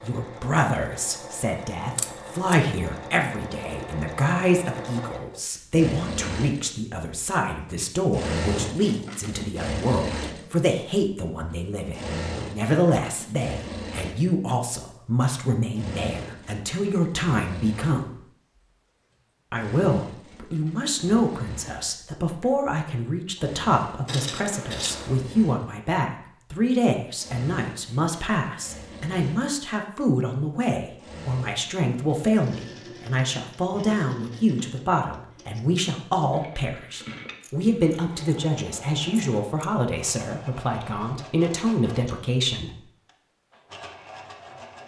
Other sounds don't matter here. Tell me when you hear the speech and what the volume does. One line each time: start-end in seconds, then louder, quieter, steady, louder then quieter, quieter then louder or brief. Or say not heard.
0.0-18.1 steady
19.5-42.7 steady.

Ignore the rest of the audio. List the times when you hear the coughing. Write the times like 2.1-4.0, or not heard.
not heard.